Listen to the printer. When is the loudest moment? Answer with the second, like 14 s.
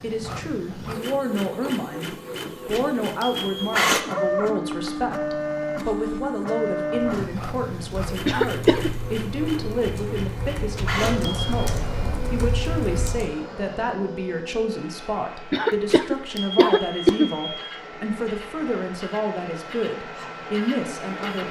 4 s.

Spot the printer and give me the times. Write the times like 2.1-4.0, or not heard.
0.0-21.4.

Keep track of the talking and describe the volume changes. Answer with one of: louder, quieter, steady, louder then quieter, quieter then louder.
steady.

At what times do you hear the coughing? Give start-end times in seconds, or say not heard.
8.2-8.9, 15.5-17.3.